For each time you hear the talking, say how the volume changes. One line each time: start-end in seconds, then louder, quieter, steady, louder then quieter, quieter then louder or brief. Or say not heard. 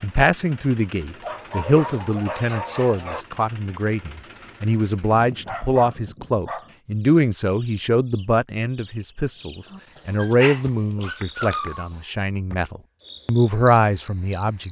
0.0-14.6 steady.